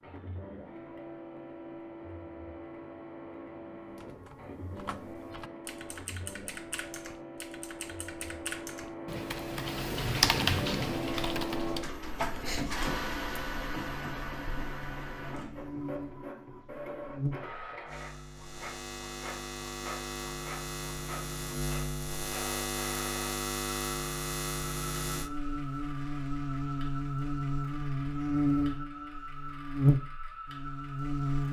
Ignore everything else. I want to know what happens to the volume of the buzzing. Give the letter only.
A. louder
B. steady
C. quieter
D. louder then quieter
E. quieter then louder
A.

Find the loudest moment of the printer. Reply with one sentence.
The volume of the printer peaks at 13 seconds.